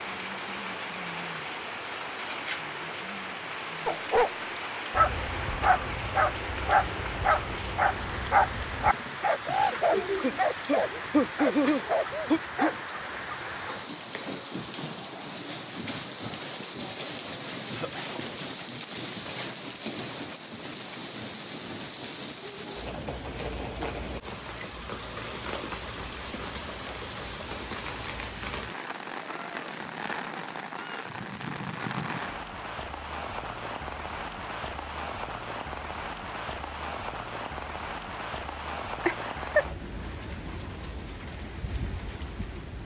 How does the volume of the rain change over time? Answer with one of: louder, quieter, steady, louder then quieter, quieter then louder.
steady.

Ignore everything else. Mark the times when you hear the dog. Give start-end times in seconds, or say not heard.
3.9-4.3, 4.9-12.8.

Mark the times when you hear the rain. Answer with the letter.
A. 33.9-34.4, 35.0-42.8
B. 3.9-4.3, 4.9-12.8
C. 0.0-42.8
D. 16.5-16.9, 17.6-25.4
C.